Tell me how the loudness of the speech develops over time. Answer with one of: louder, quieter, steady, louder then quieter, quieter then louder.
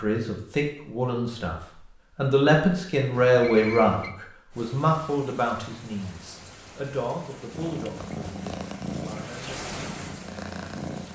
louder then quieter.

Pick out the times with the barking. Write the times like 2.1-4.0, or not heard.
not heard.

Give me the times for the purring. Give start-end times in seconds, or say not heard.
7.5-11.0.